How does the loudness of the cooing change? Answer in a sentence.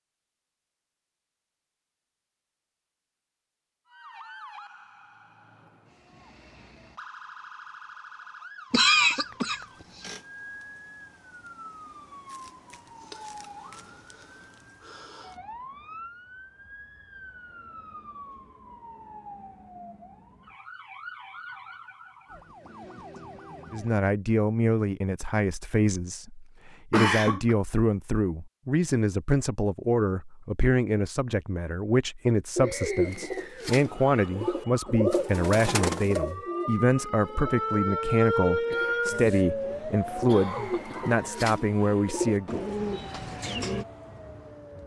The volume of the cooing goes down, then up.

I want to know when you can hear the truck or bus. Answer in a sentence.
The truck or bus can't be heard in this clip.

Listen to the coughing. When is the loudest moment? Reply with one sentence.
The volume of the coughing peaks at 9 seconds.